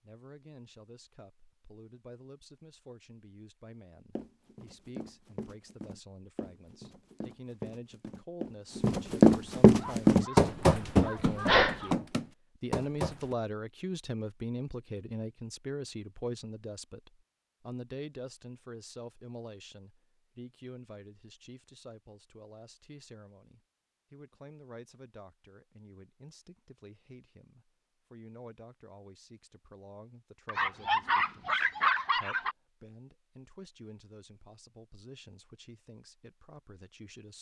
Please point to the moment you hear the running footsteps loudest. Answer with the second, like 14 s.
9 s.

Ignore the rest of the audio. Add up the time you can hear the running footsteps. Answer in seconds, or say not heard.
9 s.